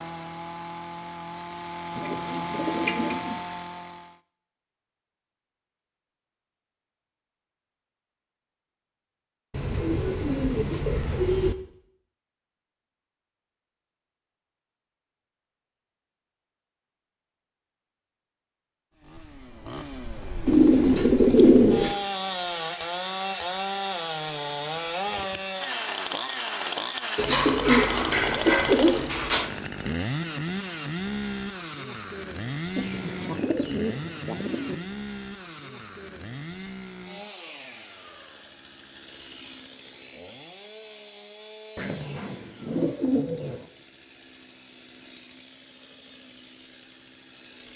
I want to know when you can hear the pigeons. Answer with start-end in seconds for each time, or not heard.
1.9-3.4, 9.5-11.6, 20.4-21.9, 27.1-29.5, 32.8-34.8, 41.8-43.6.